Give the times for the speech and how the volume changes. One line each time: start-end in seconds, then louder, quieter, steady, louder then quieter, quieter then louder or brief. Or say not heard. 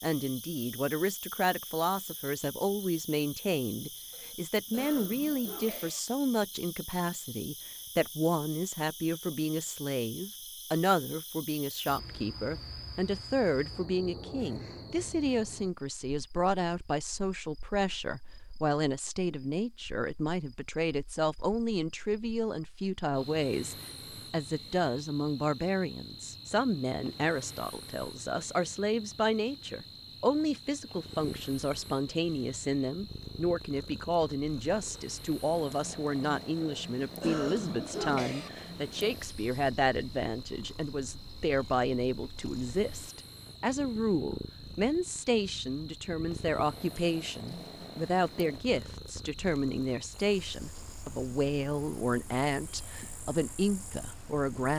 0.0-54.7 steady.